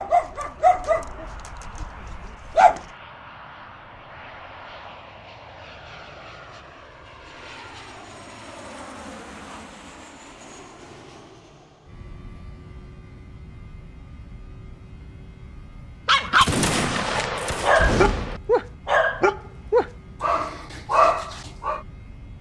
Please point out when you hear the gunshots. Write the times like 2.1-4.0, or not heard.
16.4-18.4.